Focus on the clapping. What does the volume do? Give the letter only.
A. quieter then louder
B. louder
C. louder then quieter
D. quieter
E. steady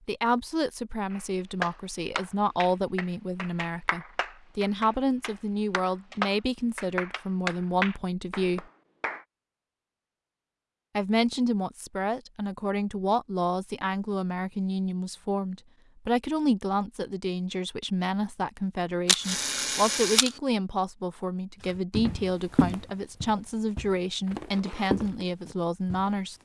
A.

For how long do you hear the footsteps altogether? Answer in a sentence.
You can hear the footsteps for 5 seconds altogether.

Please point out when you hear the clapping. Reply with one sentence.
You can hear the clapping from 1.1 to 9.2 s.